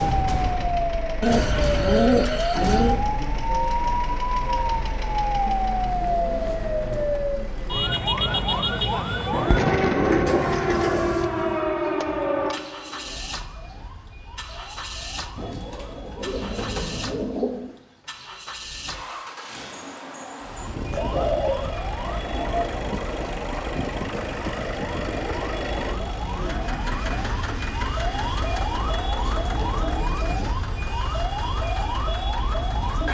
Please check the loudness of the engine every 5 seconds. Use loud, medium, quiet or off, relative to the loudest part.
medium, medium, medium, medium, loud, loud, medium.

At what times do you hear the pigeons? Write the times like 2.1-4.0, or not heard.
1.2-3.0, 9.3-11.2, 15.3-17.8, 20.9-22.8, 28.8-30.5.